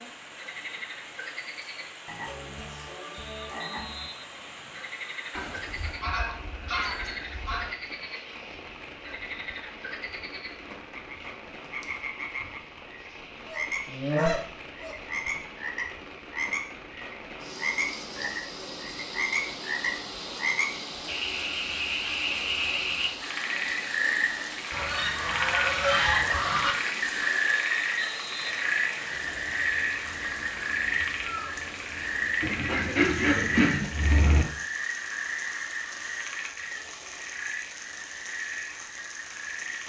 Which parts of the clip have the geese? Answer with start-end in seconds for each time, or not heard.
5.3-7.7, 13.4-15.4, 24.7-26.8, 32.4-34.5.